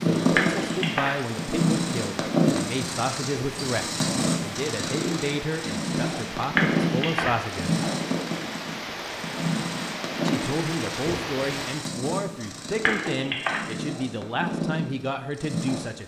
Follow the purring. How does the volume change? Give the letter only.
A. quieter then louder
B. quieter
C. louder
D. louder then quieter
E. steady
B.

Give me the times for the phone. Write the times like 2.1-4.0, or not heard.
0.3-1.1, 6.5-7.3, 12.8-13.6.